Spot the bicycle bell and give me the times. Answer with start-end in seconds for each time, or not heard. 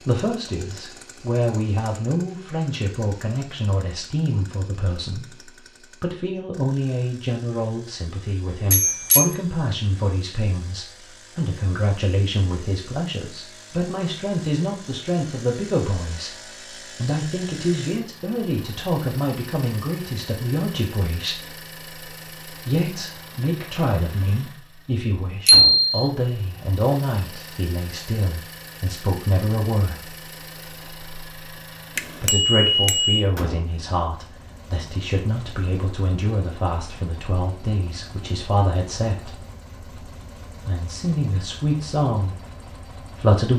8.7-9.3, 25.4-26.1, 31.9-33.2.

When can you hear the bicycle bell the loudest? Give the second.
26 s.